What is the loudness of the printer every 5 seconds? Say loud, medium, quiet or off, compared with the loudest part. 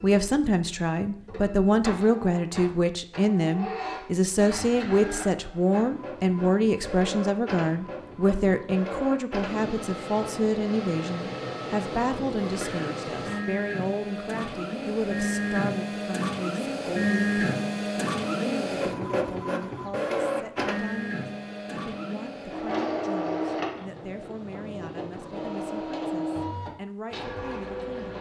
medium, medium, medium, loud, loud, medium.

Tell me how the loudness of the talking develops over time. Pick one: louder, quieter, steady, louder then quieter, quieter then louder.
quieter.